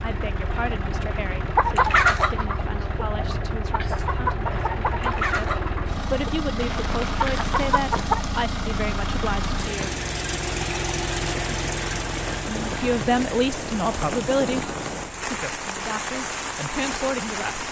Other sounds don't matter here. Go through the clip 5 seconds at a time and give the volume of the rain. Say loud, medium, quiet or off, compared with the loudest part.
off, medium, loud, loud.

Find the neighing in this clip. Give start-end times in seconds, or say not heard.
not heard.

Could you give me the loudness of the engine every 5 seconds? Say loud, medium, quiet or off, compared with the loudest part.
loud, loud, loud, quiet.